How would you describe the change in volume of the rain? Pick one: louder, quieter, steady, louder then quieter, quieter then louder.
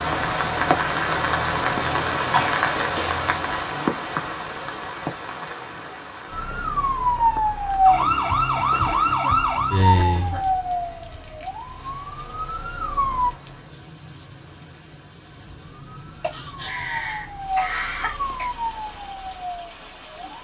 quieter.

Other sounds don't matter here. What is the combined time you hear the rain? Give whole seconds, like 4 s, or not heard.
20 s.